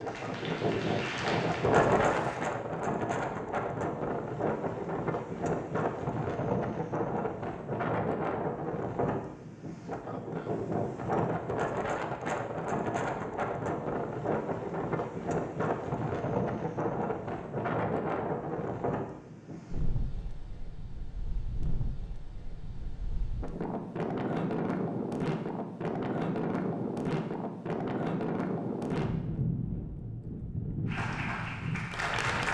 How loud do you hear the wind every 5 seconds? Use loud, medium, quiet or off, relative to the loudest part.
loud, loud, loud, loud, medium, loud, medium.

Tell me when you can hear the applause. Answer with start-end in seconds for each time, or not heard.
0.0-2.5, 30.9-32.4.